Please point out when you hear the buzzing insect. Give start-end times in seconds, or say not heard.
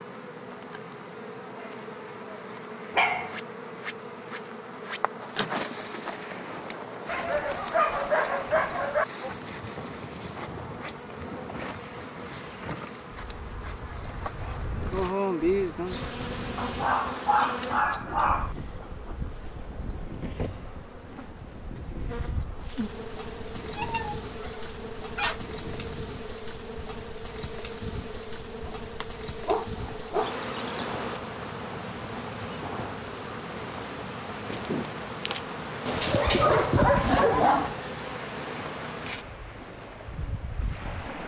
0.0-41.2.